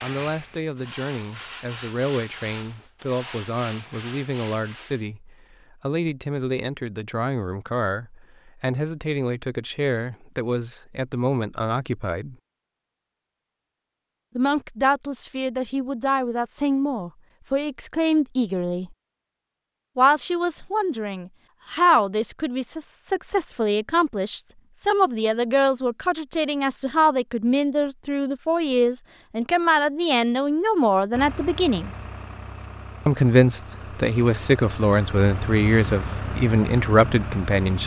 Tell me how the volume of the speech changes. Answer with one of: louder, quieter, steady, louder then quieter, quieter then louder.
louder.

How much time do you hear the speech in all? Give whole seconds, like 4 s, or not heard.
34 s.